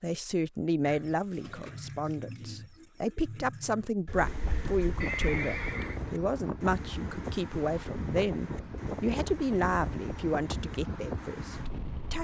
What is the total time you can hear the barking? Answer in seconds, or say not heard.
not heard.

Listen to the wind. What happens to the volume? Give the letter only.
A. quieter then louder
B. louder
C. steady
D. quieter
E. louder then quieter
C.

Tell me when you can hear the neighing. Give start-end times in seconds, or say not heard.
5.0-6.0.